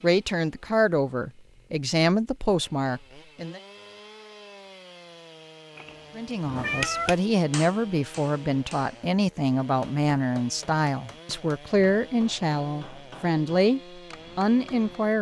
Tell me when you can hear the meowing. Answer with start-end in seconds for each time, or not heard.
6.5-7.2.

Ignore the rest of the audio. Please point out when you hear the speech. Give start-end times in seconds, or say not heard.
0.0-3.6, 6.2-15.1.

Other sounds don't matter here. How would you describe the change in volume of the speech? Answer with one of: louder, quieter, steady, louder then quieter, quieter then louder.
steady.